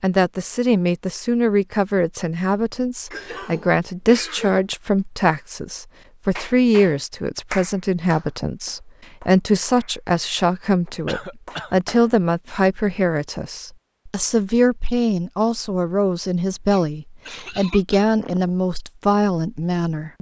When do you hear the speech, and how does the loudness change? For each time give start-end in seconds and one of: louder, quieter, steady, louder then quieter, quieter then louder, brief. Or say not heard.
0.0-20.1 steady.